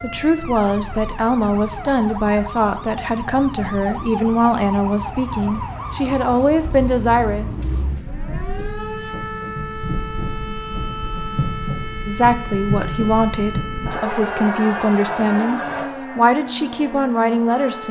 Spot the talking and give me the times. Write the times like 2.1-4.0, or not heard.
0.0-7.5, 12.1-17.8.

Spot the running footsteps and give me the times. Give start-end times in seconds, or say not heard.
not heard.